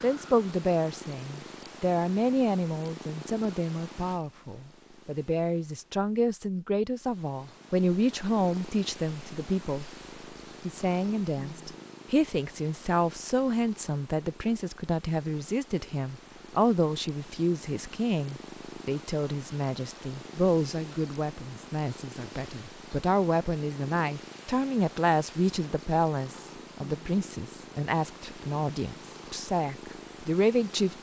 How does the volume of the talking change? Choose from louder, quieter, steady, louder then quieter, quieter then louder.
steady.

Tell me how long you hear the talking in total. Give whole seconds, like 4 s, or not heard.
30 s.